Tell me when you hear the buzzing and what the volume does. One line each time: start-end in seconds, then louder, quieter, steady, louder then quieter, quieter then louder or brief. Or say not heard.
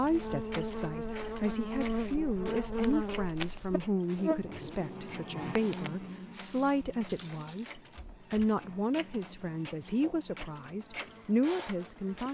0.0-12.3 quieter.